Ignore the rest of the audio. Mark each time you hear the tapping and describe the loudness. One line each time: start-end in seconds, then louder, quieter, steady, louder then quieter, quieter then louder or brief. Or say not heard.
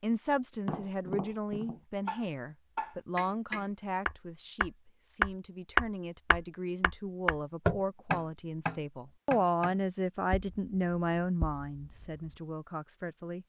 0.7-12.3 louder then quieter.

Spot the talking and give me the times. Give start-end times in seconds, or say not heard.
0.0-13.4.